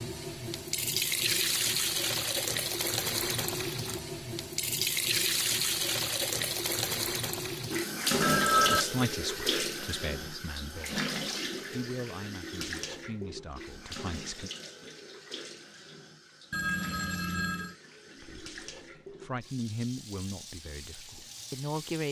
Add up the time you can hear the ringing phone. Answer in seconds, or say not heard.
2 s.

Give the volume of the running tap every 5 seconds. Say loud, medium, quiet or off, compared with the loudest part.
loud, loud, medium, quiet, quiet.